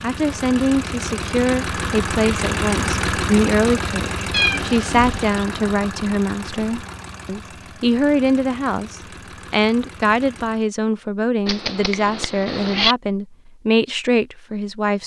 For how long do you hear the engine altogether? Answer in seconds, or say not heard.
11 s.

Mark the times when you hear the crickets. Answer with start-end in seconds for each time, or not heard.
not heard.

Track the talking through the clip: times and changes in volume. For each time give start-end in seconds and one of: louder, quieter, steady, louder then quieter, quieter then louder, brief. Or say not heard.
0.0-15.0 steady.